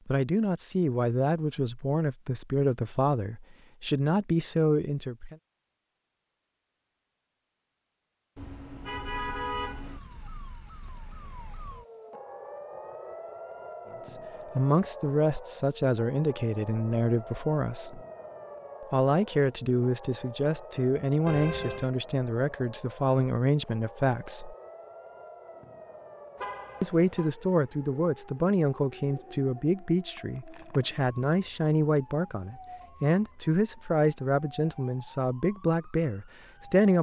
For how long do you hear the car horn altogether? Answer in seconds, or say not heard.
3 s.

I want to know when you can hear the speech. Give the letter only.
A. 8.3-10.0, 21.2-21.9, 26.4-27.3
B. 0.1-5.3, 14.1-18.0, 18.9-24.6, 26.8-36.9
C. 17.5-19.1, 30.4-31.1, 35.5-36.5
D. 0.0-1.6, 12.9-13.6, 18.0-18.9
B.